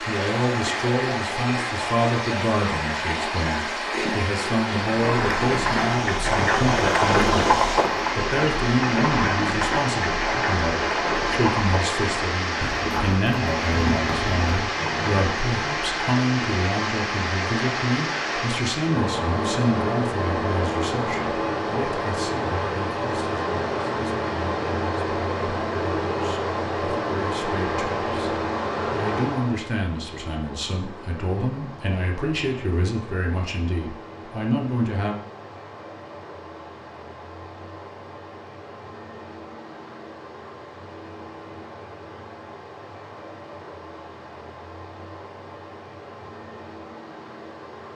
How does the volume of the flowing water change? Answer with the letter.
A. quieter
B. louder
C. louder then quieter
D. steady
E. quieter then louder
A.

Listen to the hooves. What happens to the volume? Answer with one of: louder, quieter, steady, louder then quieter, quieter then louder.
quieter.